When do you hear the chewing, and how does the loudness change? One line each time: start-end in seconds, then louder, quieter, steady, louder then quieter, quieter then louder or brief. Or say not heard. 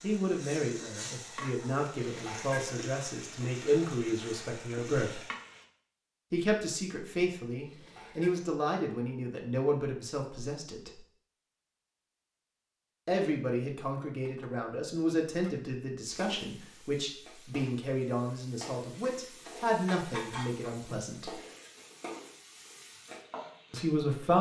not heard.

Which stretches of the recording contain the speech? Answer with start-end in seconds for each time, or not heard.
0.0-5.2, 6.3-11.0, 13.1-21.4, 23.7-24.3.